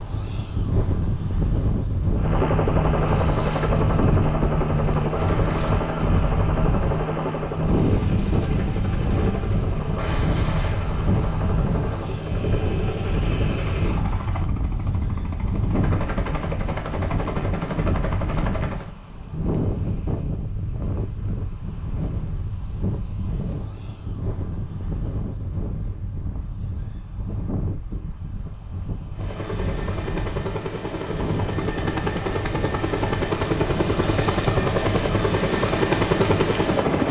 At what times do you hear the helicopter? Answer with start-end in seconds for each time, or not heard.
2.1-18.9, 29.1-37.0.